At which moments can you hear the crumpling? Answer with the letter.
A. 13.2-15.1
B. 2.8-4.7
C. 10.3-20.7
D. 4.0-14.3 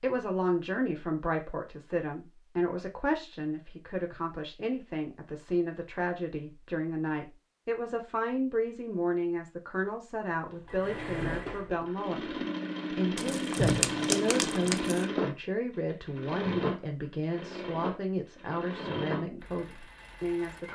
A.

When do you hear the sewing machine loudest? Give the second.
14 s.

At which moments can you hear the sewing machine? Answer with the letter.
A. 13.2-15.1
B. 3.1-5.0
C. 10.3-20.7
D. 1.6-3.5
C.